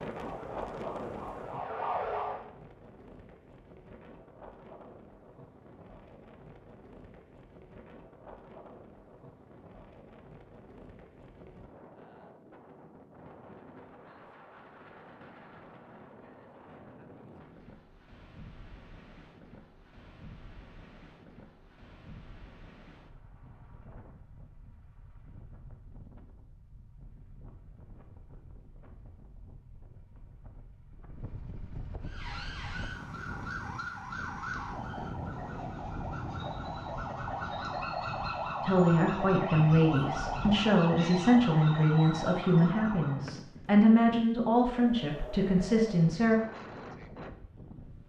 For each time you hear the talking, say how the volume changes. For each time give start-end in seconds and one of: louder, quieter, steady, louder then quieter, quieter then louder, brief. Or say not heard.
38.6-46.4 steady.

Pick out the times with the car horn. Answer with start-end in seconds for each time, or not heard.
not heard.